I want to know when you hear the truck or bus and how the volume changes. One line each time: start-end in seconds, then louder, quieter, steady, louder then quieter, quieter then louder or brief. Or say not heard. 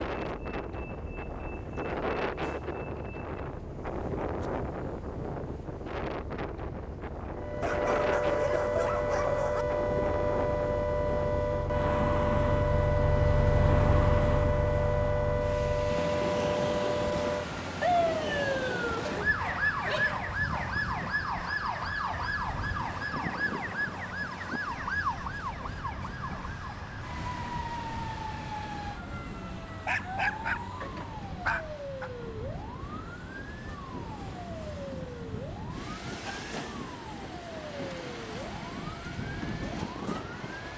0.2-40.7 louder then quieter.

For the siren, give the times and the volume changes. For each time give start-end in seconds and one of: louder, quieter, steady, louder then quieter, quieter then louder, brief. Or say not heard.
7.3-40.7 quieter.